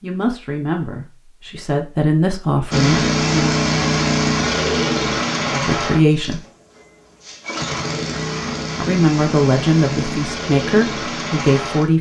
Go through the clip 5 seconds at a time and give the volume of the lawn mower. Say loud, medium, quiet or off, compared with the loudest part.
loud, medium, medium.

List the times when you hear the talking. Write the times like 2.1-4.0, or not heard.
0.0-3.5, 5.5-6.5, 8.8-11.9.